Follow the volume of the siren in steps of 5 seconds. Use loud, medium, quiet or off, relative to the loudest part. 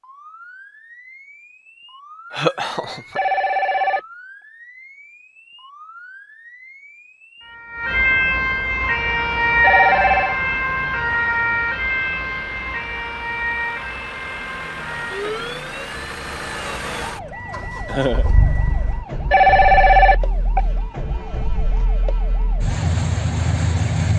quiet, loud, loud, quiet, quiet.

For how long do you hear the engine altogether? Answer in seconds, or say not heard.
15 s.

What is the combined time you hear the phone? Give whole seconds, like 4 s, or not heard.
3 s.